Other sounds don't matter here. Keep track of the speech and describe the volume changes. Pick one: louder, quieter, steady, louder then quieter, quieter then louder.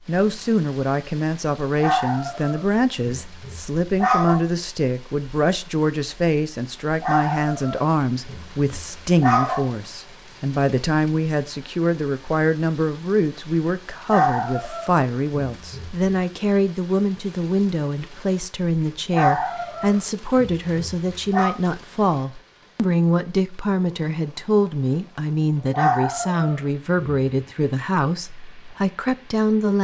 steady.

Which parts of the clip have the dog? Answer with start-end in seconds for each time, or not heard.
1.8-4.4, 7.0-9.6, 14.1-16.1, 19.1-21.6, 25.7-27.1.